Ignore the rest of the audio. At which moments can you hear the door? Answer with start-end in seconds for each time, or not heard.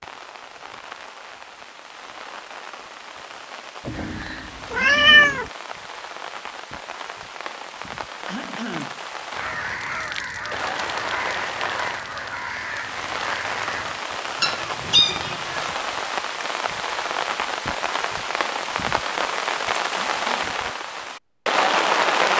not heard.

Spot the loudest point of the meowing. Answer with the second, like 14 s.
5 s.